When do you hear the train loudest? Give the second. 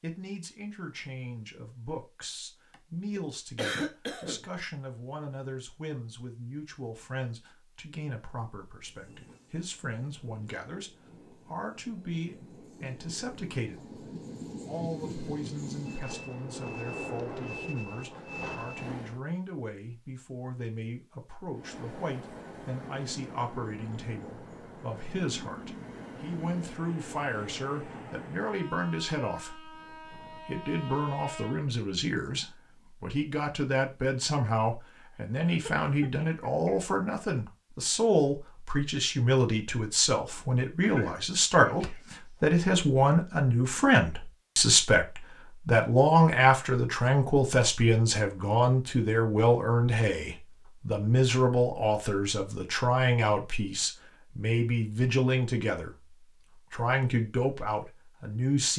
17 s.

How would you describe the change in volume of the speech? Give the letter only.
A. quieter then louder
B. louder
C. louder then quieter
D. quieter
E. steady
B.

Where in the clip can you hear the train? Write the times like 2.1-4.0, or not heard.
8.8-19.2, 21.5-31.7.